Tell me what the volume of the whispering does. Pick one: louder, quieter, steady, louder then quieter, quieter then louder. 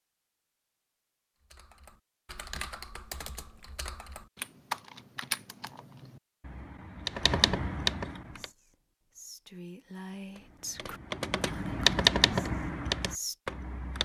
louder then quieter.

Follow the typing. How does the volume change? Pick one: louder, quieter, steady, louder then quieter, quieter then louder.
louder.